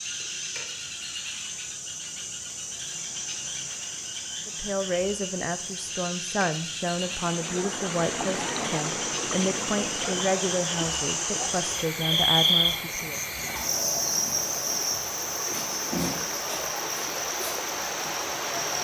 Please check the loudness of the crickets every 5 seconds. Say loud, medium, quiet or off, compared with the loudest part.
medium, medium, loud, medium.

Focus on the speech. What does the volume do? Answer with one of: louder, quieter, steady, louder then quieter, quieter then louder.
steady.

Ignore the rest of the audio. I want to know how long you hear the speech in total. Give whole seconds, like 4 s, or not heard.
9 s.